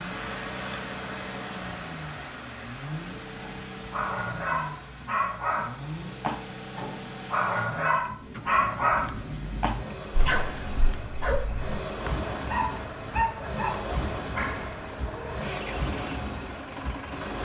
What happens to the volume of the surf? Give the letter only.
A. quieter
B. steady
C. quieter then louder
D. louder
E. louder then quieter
C.